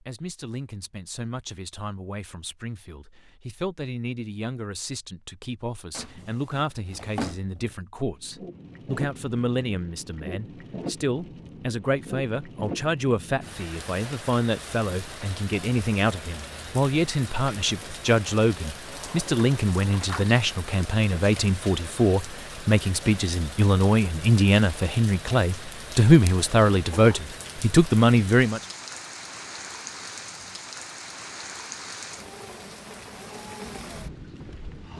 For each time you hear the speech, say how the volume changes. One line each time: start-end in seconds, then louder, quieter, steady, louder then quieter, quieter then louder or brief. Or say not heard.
0.0-28.6 louder.